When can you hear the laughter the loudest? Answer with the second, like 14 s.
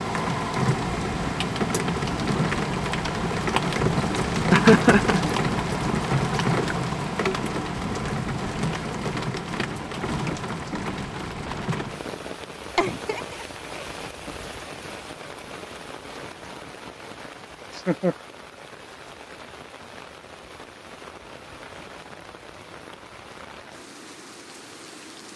5 s.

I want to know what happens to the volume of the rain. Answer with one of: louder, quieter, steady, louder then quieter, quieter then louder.
quieter.